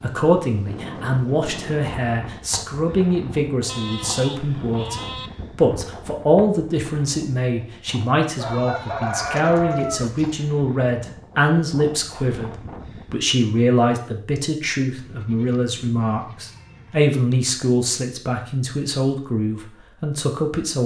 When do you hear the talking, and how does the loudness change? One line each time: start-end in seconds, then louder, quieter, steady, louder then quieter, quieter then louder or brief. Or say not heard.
0.0-20.8 steady.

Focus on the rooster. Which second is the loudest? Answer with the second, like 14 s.
10 s.